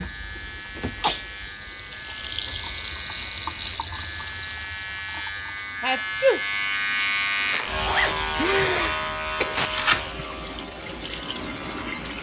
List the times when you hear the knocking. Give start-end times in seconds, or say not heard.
not heard.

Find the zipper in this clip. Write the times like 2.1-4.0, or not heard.
7.5-10.1.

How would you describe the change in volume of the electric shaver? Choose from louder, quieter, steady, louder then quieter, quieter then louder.
louder then quieter.